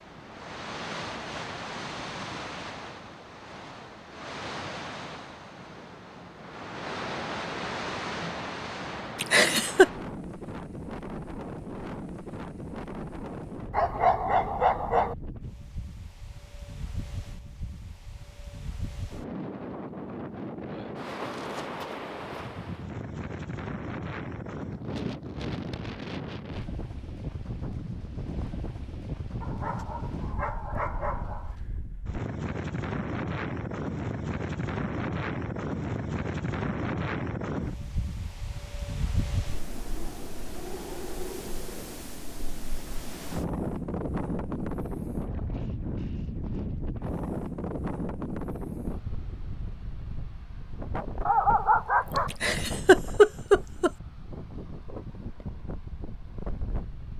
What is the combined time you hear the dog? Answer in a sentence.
You can hear the dog for 5 seconds altogether.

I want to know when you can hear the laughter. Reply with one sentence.
You can hear the laughter from 9.2 to 9.8 s and from 52.3 to 53.9 s.